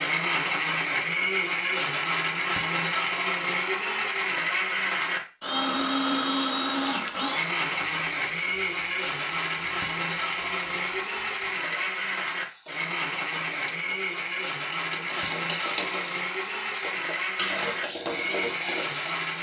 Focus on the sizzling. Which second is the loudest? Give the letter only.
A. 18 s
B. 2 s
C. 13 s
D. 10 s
A.